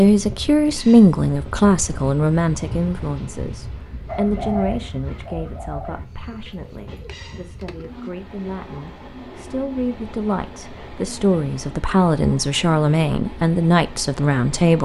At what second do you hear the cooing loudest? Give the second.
5 s.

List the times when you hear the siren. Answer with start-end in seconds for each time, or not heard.
not heard.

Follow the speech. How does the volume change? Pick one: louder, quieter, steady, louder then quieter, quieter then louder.
quieter then louder.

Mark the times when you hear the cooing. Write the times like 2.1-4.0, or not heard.
4.0-8.0.